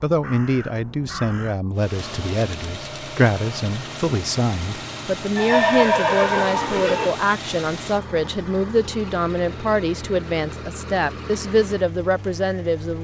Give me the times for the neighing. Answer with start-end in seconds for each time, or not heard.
5.3-7.3.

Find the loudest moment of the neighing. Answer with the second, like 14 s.
6 s.